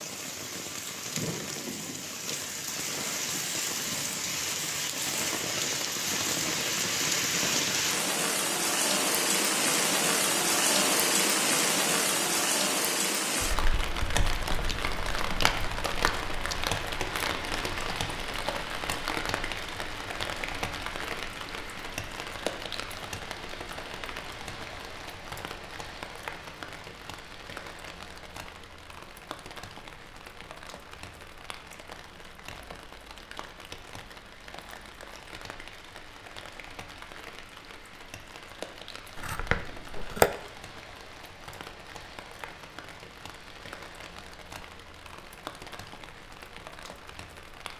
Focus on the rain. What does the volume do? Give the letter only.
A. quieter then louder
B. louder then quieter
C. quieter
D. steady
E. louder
C.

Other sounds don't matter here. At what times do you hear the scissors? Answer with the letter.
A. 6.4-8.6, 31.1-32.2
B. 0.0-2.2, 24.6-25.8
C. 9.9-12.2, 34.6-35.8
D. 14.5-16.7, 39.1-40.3
D.